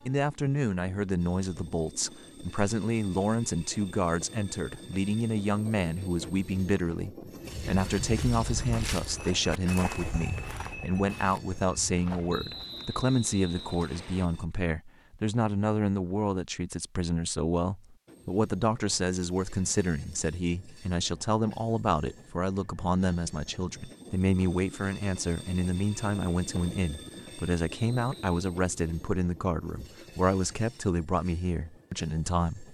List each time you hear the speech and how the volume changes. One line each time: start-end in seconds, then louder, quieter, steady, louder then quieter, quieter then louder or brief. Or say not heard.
0.1-32.6 steady.